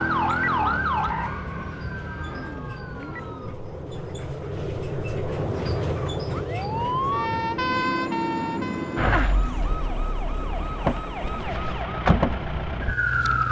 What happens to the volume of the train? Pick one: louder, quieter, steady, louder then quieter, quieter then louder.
louder then quieter.